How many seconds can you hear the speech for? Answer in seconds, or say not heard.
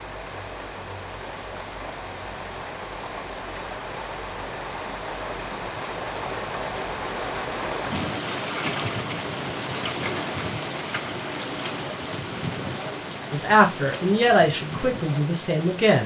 3 s.